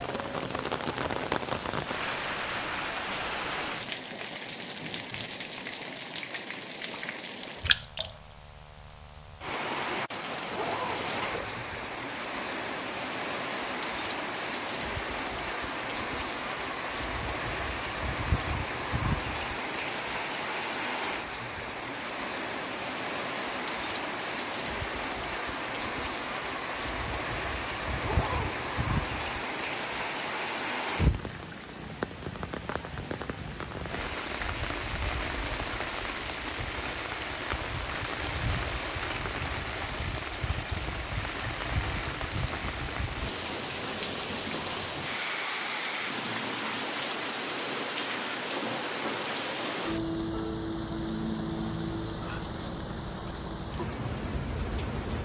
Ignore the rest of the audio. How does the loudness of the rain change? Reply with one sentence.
The volume of the rain stays about the same.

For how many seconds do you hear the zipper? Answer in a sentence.
The zipper can be heard for 2 seconds in total.